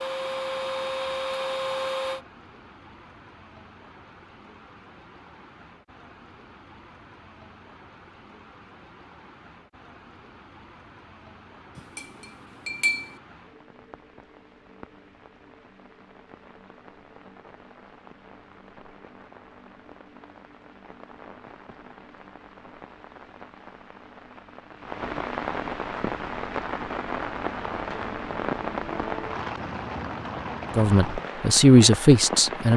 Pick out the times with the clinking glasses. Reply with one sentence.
The clinking glasses can be heard from 11.8 to 13.2 s.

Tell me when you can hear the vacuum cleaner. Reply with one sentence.
You can hear the vacuum cleaner from 0.0 to 2.2 s.